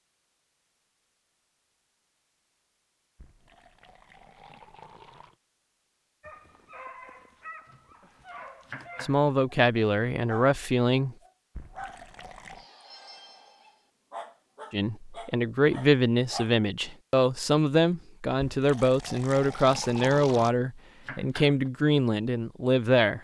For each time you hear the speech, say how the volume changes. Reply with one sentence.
The speech can be heard briefly from 9.0 to 11.2 s; and from 14.7 to 23.2 s, at a steady volume.